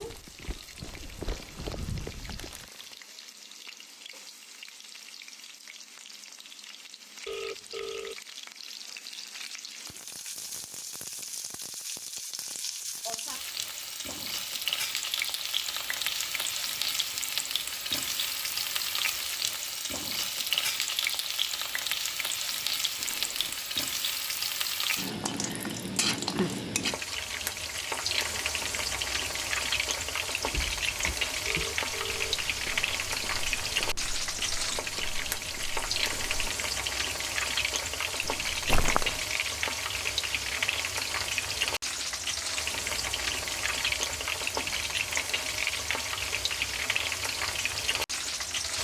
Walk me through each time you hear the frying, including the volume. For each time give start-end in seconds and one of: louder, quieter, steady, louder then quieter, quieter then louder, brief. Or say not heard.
0.0-48.7 louder.